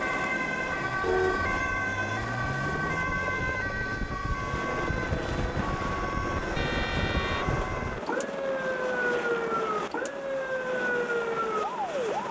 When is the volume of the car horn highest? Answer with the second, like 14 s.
1 s.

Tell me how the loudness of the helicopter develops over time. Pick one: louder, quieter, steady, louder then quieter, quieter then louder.
steady.